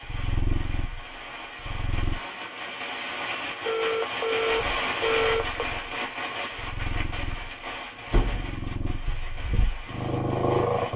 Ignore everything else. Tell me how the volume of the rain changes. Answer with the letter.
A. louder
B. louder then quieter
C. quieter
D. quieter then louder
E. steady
B.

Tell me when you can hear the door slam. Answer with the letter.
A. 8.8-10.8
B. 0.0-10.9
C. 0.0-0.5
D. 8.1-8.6
D.